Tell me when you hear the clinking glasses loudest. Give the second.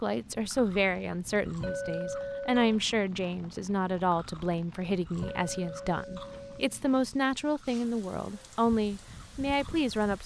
2 s.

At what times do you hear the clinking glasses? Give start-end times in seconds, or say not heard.
1.6-2.6, 5.2-6.7.